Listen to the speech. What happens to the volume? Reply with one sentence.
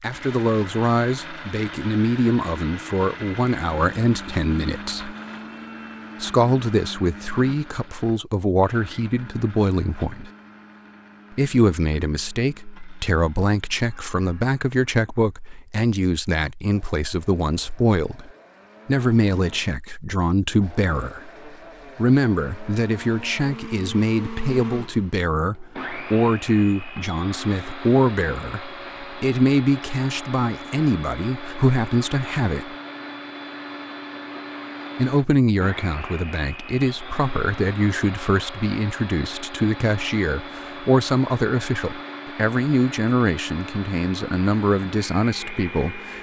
The loudness of the speech stays about the same.